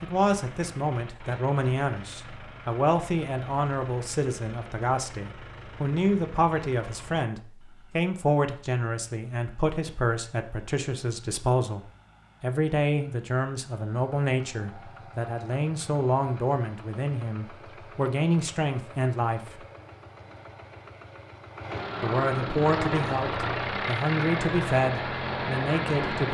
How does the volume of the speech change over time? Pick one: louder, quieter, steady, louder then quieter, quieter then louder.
steady.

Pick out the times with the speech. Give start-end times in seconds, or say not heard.
0.0-19.6, 22.0-26.2.